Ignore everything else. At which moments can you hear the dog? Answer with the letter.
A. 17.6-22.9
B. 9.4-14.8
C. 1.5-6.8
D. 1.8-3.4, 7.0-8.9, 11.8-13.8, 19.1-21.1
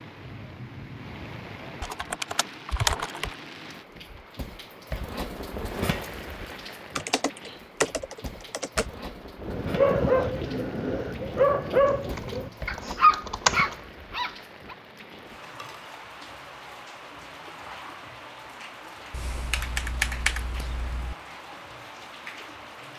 B.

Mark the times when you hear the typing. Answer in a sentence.
You can hear the typing from 1.8 to 3.4 s, from 7.0 to 8.9 s, from 11.8 to 13.8 s and from 19.1 to 21.1 s.